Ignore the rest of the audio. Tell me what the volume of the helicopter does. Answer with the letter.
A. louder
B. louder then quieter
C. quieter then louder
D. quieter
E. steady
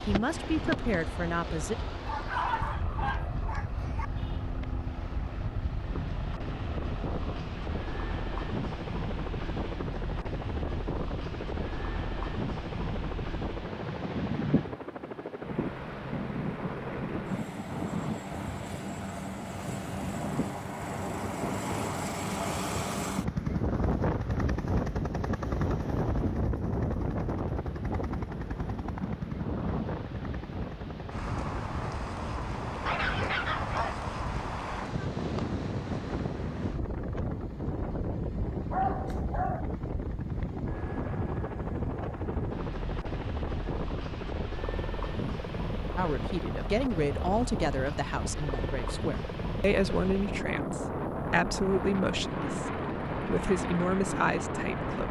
B.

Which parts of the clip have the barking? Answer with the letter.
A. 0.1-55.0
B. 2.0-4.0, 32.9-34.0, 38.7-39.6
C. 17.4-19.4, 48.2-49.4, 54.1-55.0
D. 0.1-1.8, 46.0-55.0
B.